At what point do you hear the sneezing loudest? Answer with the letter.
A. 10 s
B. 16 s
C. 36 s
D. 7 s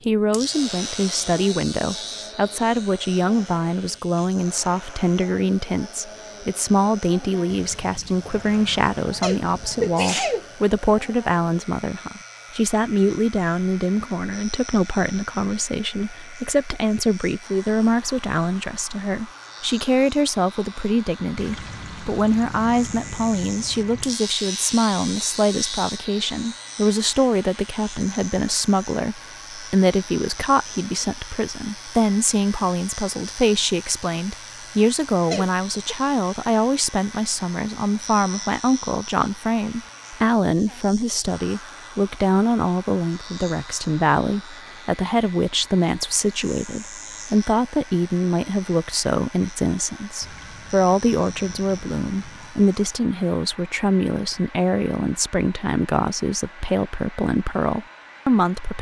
A.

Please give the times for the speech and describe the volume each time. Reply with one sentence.
The speech can be heard from 0.1 to 58.7 s, at a steady volume.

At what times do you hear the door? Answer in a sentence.
You can't hear the door here.